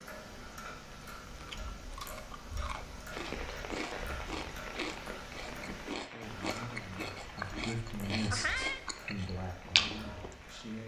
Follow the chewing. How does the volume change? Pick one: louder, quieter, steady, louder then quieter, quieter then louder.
louder.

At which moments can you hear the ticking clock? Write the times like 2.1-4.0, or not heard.
0.0-10.8.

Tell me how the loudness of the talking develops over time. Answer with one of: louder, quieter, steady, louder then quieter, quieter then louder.
louder then quieter.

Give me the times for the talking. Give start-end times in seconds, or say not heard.
6.0-10.8.